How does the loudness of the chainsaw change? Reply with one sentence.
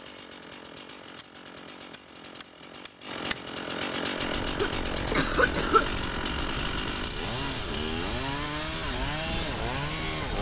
The volume of the chainsaw goes up.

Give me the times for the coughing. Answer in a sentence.
The coughing can be heard from 4.5 to 5.9 s.